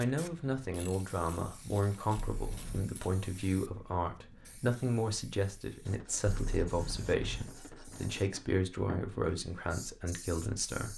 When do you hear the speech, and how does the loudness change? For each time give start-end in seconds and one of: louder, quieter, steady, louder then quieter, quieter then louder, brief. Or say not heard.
0.0-10.9 steady.